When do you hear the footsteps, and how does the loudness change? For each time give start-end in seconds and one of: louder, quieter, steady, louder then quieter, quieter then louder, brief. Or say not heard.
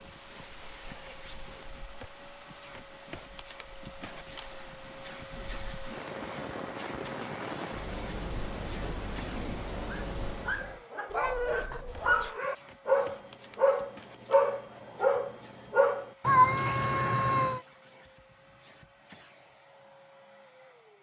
not heard.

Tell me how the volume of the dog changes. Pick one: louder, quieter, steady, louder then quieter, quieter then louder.
louder.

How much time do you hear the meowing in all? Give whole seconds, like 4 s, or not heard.
4 s.